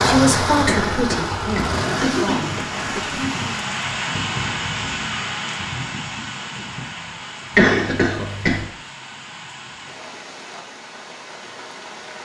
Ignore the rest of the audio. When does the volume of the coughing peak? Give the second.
8 s.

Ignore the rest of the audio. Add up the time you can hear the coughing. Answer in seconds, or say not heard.
3 s.